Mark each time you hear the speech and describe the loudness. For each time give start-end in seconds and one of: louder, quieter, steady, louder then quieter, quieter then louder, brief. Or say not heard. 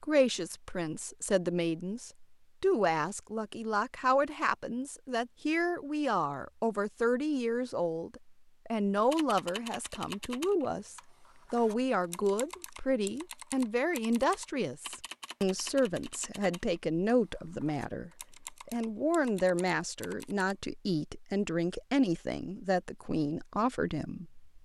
0.0-24.4 steady.